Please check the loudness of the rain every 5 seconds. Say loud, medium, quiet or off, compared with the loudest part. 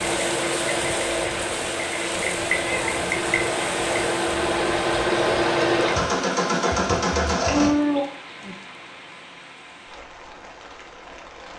loud, medium, quiet.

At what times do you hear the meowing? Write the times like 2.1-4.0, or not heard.
2.1-3.5, 7.5-8.6.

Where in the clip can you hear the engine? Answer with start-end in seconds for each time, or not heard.
0.0-7.8.